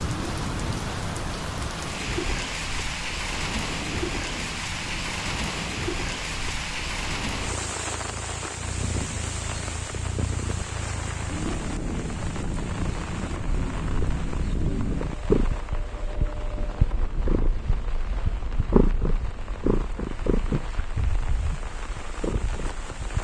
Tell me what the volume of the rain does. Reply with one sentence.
The volume of the rain goes down.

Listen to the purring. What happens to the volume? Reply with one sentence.
The loudness of the purring goes up.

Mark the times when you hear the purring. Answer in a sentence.
You can hear the purring from 0.0 to 23.2 s.